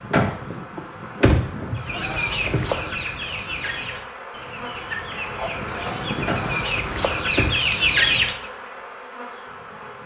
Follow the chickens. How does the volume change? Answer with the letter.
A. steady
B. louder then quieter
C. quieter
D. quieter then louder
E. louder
D.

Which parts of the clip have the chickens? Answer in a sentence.
The chickens can be heard from 1.8 to 8.5 s.